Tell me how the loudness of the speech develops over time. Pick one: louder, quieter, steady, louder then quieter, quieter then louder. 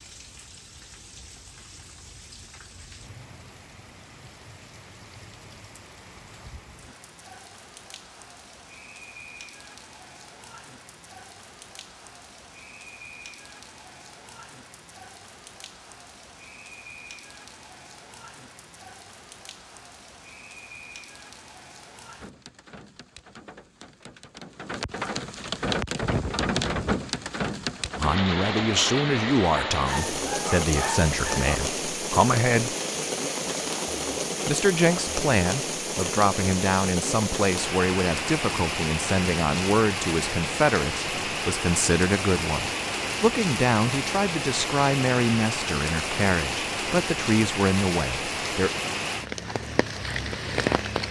steady.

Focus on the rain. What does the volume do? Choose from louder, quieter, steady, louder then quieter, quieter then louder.
louder.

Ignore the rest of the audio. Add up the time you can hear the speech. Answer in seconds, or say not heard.
19 s.